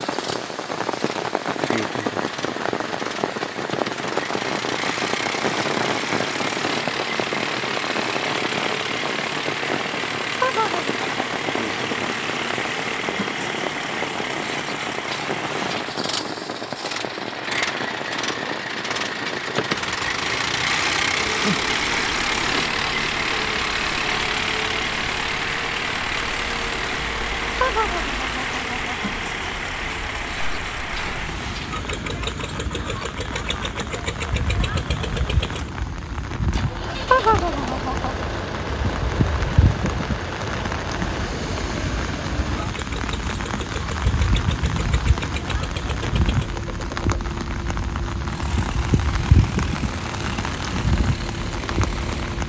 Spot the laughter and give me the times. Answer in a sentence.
The laughter can be heard from 10.4 to 11.4 s, from 27.6 to 28.9 s and from 37.1 to 38.1 s.